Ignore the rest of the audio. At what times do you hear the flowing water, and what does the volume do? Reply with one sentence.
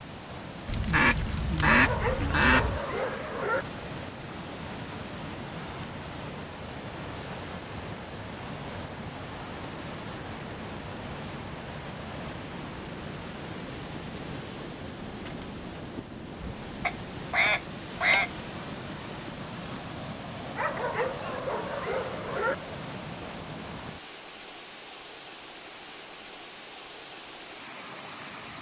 You can hear the flowing water from 0.0 to 28.5 s, at a steady volume.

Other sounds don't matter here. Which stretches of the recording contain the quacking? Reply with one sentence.
The quacking can be heard from 0.7 to 2.8 s and from 16.9 to 18.3 s.